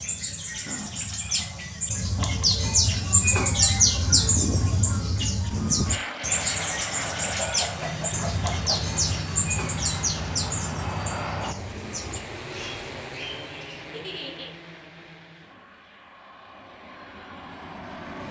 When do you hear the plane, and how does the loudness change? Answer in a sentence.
The plane can be heard from 4.0 to 18.2 s, getting quieter.